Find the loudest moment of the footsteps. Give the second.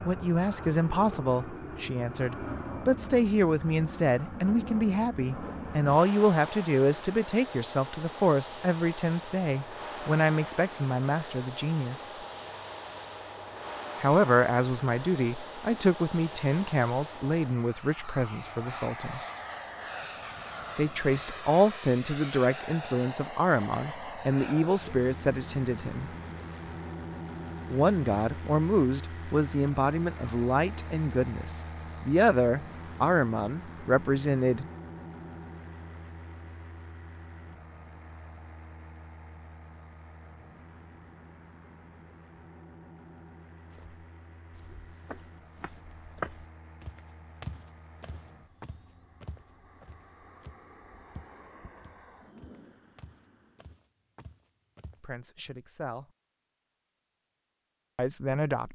46 s.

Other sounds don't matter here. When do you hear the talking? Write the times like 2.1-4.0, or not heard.
0.1-12.2, 14.0-19.2, 20.8-26.1, 27.7-34.6, 55.0-56.0, 58.0-58.6.